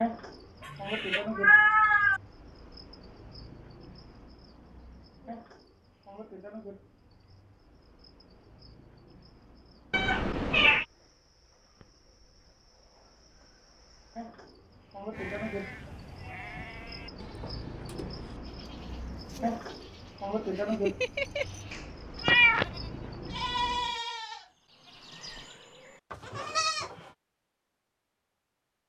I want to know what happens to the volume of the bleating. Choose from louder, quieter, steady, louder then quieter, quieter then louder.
quieter then louder.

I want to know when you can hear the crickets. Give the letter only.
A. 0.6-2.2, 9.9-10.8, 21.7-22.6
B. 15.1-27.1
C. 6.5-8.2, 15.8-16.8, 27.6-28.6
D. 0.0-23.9
D.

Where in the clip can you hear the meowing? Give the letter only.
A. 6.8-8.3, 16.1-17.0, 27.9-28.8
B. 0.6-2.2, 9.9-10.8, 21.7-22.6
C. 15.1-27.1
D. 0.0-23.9
B.